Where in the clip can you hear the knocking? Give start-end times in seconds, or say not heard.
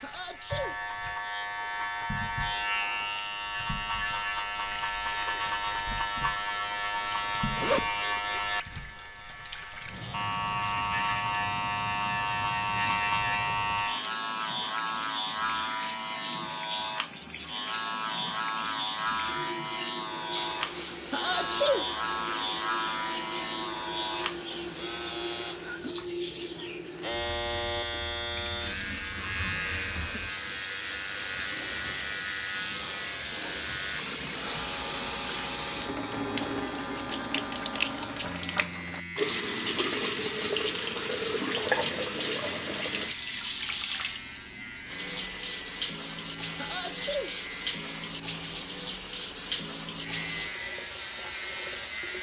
not heard.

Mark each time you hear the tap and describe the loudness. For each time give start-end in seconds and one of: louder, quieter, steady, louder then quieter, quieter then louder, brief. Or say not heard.
0.0-52.1 louder.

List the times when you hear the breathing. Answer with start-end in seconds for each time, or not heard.
not heard.